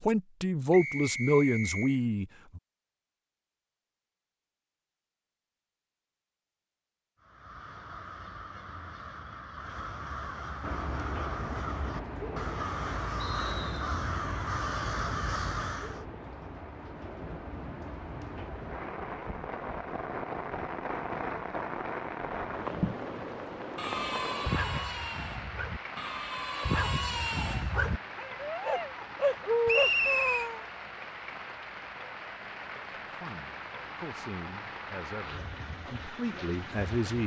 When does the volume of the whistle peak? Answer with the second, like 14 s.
30 s.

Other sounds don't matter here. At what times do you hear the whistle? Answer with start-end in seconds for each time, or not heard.
0.7-2.0, 13.2-13.8, 29.6-30.5.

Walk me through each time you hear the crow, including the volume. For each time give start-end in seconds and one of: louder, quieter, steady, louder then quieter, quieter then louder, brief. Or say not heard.
7.2-16.1 louder.